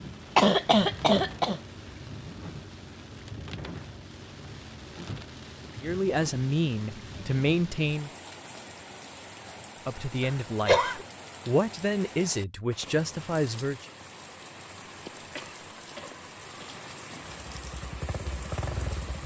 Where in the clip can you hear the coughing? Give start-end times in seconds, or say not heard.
0.3-1.6, 10.2-11.1, 15.3-16.7.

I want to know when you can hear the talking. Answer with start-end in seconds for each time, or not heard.
5.8-8.1, 9.8-13.8.